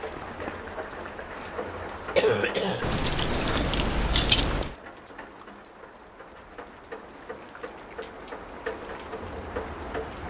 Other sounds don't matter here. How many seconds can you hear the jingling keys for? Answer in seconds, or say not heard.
2 s.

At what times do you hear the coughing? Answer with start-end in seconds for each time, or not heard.
2.1-2.9.